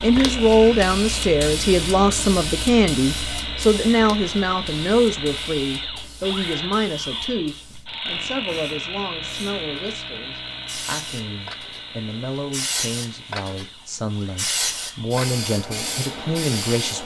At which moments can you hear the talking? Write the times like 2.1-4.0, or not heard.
0.0-17.0.